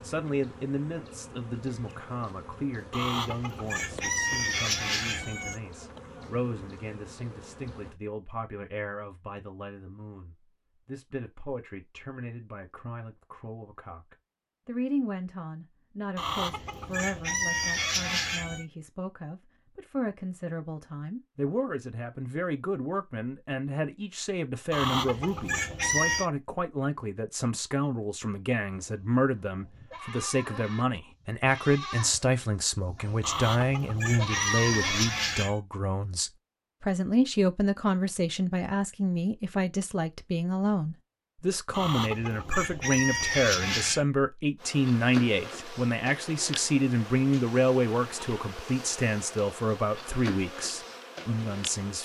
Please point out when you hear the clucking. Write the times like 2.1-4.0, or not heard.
2.9-5.6, 16.1-18.6, 24.7-26.3, 33.2-35.5, 41.7-44.0.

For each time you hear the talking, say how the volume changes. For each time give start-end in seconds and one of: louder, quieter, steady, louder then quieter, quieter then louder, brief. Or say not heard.
0.0-52.0 louder.